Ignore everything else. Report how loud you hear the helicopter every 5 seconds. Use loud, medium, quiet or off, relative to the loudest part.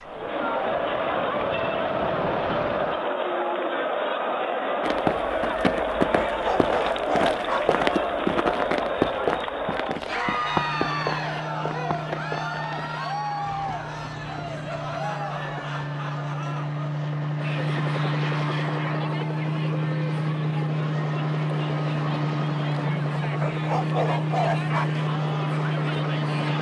medium, off, medium, loud, loud, loud.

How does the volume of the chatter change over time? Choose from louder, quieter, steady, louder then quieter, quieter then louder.
quieter.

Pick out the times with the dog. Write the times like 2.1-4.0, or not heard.
6.2-7.8, 23.4-25.1.